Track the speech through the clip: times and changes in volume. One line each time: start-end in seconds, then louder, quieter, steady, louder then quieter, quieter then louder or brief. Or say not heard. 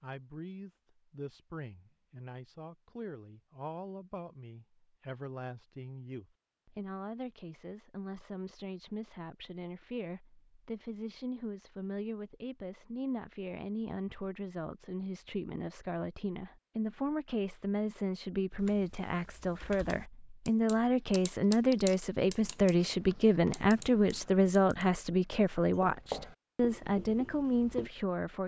0.0-28.4 louder.